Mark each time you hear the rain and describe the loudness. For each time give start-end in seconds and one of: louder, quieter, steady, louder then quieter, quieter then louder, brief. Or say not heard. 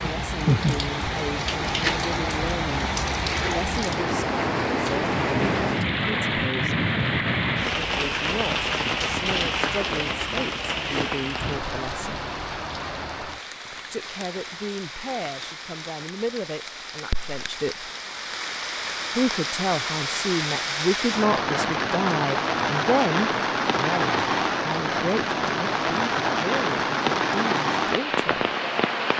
0.0-29.1 quieter then louder.